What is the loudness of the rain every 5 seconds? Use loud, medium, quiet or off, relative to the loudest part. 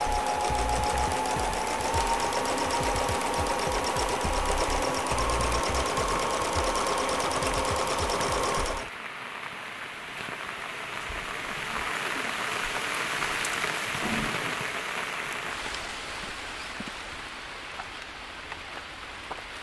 medium, medium, loud, medium.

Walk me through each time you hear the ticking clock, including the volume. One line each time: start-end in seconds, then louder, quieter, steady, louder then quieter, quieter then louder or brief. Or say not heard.
not heard.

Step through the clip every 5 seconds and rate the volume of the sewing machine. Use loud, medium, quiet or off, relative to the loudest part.
loud, loud, off, off.